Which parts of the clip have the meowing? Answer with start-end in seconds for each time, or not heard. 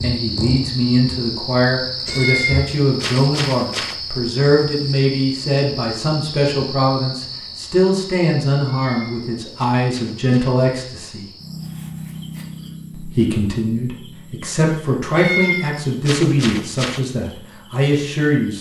2.0-4.0, 8.7-10.3, 15.1-17.0.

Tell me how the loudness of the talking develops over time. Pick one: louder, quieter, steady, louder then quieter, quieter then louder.
steady.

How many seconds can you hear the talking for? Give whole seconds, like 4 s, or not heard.
17 s.